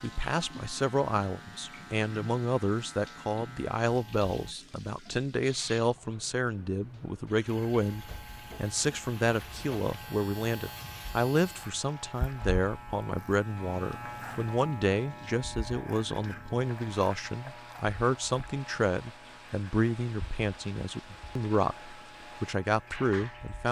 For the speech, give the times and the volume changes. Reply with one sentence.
You can hear the speech from 0.0 to 23.6 s, at a steady volume.